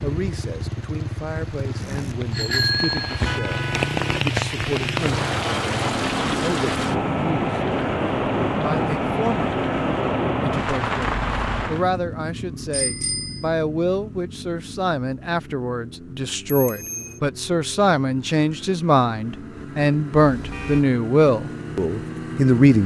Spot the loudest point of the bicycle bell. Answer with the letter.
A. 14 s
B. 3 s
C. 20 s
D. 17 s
B.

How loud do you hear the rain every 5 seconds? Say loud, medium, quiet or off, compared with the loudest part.
medium, loud, loud, off, off.